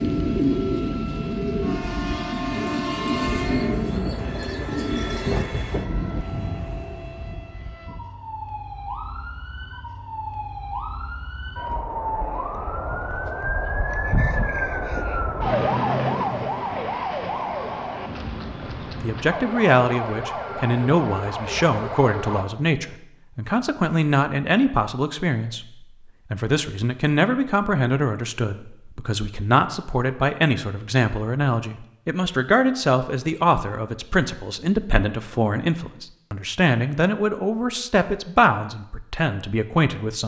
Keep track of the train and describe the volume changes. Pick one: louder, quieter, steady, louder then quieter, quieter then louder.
quieter.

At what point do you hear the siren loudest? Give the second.
16 s.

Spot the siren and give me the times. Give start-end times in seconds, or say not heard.
0.0-22.4.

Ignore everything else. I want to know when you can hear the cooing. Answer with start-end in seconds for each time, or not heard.
0.0-5.5.